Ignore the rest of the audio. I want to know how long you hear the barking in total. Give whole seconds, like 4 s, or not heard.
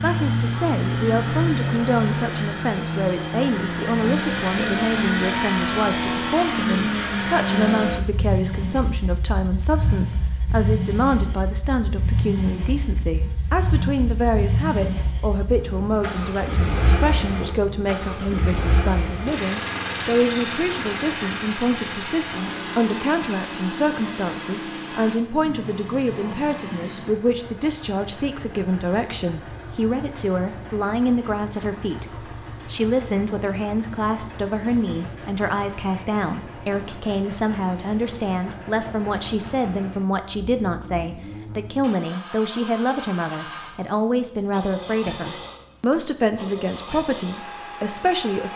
not heard.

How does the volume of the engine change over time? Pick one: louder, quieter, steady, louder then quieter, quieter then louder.
quieter.